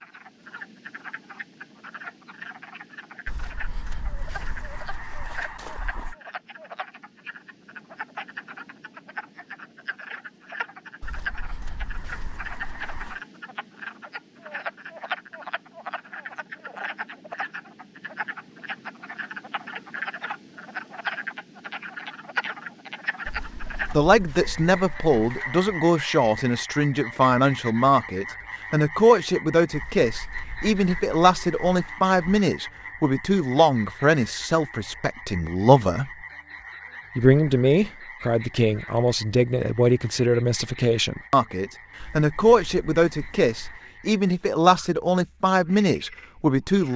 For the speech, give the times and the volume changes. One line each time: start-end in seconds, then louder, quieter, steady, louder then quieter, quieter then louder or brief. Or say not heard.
23.9-36.1 steady
37.1-46.9 steady.